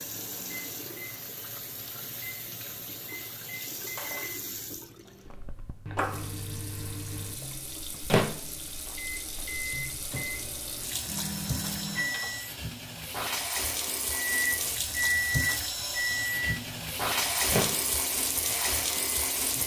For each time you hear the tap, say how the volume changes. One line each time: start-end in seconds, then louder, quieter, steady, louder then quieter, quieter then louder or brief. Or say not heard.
0.0-19.6 louder.